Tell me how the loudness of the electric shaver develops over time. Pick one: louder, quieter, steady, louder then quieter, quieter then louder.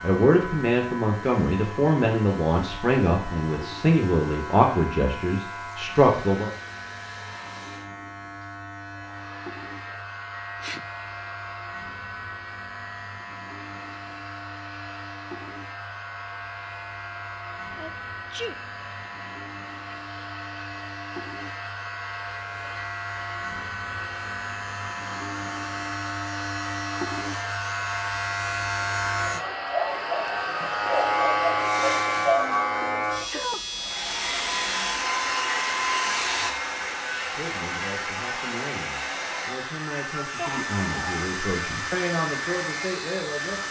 louder then quieter.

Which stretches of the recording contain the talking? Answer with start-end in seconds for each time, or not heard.
0.0-6.5, 37.2-43.6.